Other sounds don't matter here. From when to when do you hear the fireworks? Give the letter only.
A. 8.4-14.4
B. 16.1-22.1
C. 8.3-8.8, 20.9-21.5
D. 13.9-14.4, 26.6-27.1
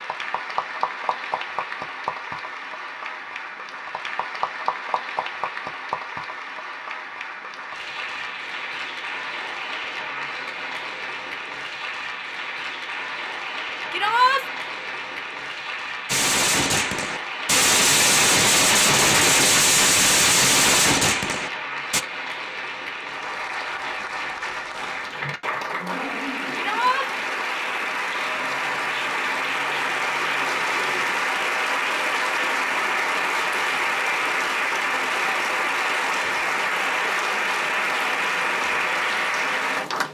B.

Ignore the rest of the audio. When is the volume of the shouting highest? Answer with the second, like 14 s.
14 s.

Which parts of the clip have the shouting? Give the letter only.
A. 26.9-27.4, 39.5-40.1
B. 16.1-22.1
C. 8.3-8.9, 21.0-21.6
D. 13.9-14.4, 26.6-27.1
D.